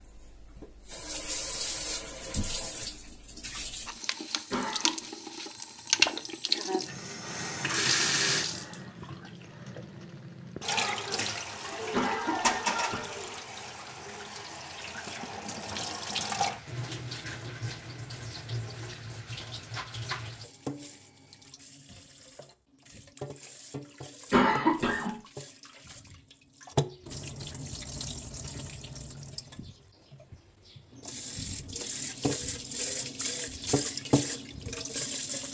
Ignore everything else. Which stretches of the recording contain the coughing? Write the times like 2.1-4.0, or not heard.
4.5-5.0, 11.9-13.2, 24.3-25.1.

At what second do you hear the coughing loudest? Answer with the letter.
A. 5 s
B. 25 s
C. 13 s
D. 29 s
B.